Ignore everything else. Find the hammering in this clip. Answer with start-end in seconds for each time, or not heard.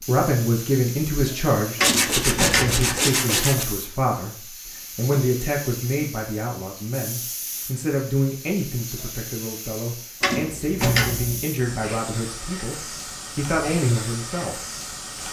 not heard.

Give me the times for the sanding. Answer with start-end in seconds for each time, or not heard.
1.8-3.8.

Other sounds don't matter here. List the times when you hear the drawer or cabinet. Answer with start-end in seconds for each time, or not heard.
1.8-3.0, 10.2-11.4.